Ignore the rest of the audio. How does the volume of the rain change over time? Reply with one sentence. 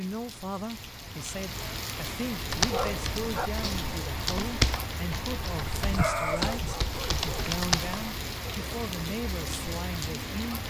The volume of the rain stays about the same.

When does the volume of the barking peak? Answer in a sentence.
The loudest moment of the barking is at 6 seconds.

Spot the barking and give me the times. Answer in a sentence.
The barking can be heard from 2.6 to 3.5 s and from 5.8 to 7.5 s.